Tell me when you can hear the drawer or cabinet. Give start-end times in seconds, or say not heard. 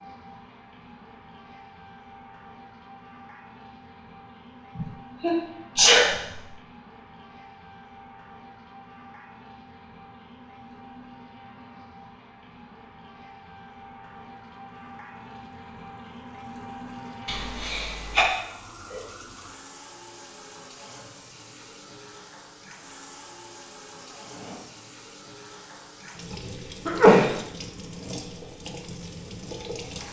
24.1-24.7.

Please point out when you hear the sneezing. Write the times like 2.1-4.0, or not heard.
4.8-6.4, 17.2-18.3, 26.9-27.4.